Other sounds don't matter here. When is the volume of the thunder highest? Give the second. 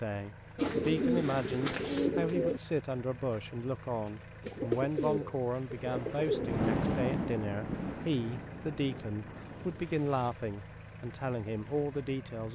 7 s.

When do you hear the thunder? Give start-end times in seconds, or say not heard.
5.8-9.8.